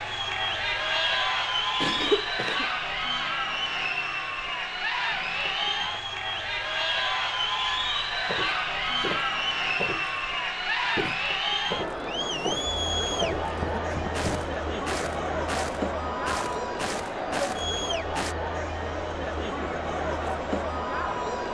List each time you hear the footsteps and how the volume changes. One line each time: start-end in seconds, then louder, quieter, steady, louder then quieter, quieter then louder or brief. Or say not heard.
8.2-10.2 brief
10.8-18.4 steady.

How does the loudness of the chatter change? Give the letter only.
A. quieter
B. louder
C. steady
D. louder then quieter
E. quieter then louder
C.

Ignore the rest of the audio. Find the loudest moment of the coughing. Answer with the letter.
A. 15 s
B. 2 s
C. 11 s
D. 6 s
B.